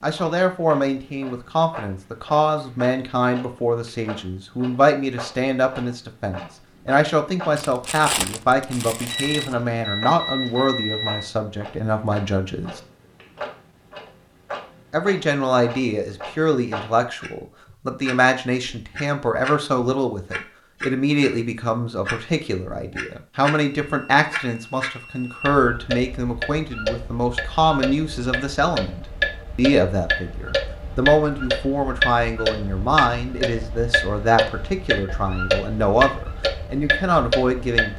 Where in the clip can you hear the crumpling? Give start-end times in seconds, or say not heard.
7.5-9.6.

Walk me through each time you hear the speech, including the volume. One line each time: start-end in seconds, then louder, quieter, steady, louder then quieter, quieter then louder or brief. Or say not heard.
0.0-12.8 steady
14.9-37.9 steady.